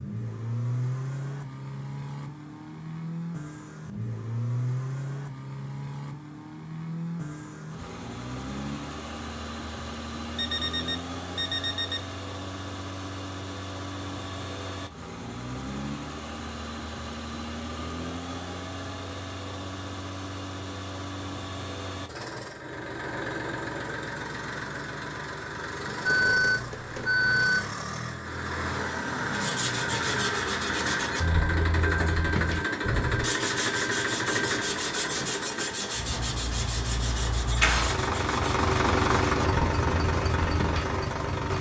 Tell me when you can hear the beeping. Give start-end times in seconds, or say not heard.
10.3-12.0, 26.1-27.7.